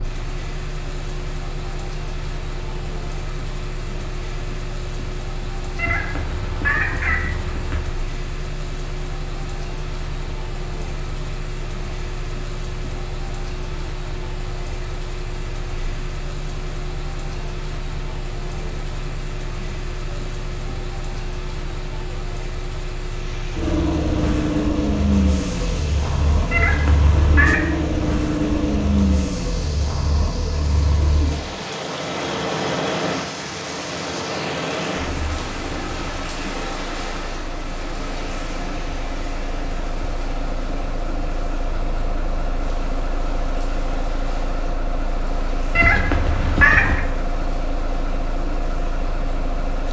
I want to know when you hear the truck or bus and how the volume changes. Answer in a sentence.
The truck or bus can be heard from 0.0 to 49.8 s, getting louder then quieter.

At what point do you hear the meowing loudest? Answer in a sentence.
The volume of the meowing peaks at 47 seconds.